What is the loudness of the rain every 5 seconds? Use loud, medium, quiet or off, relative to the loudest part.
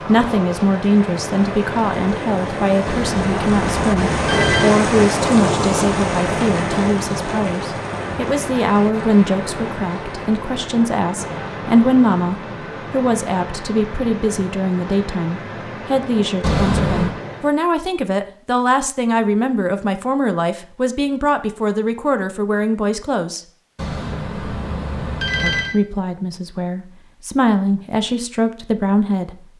loud, loud, medium, medium, off, off.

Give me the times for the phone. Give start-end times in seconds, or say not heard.
2.9-4.7, 16.4-17.1, 23.8-25.8.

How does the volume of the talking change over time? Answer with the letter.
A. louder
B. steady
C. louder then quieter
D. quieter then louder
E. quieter
B.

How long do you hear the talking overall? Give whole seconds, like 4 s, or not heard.
27 s.